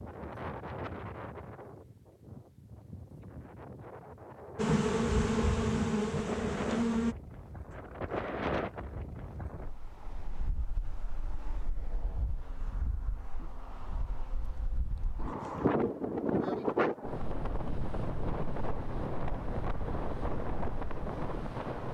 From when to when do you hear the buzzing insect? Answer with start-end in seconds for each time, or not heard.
4.5-7.2.